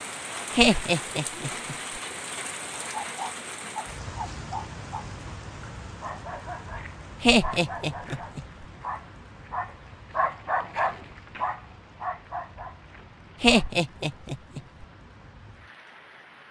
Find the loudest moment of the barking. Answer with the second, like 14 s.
11 s.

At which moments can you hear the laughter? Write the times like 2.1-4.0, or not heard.
0.6-1.8, 7.2-8.4, 13.4-14.6.